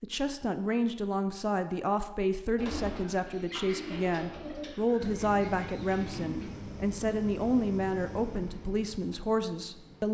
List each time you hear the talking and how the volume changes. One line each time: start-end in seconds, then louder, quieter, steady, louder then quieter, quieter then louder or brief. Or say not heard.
0.0-10.0 steady.